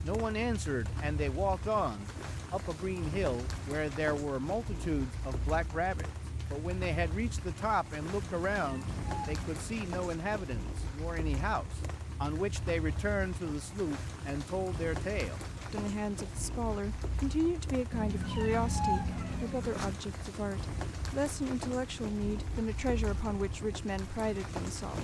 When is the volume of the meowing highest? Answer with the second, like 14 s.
19 s.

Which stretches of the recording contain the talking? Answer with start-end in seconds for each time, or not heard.
0.0-24.9.